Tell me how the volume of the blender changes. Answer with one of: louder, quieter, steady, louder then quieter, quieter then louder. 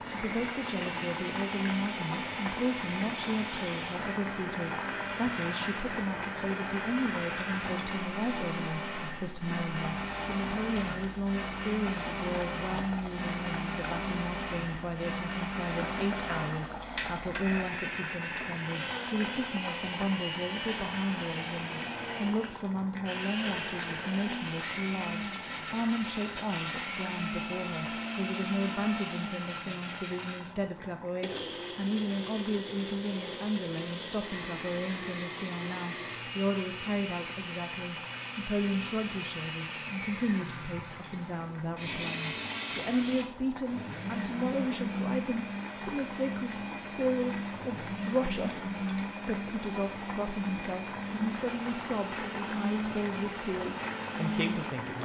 steady.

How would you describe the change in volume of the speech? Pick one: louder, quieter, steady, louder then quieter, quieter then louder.
steady.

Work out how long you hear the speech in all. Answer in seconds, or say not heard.
55 s.